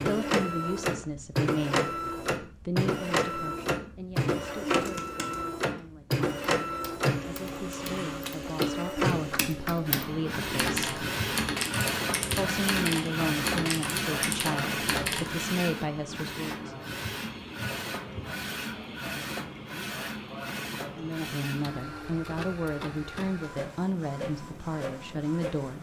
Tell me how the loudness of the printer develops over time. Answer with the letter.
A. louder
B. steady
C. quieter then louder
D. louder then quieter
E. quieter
E.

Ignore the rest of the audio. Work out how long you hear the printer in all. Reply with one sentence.
The printer can be heard for 26 seconds in total.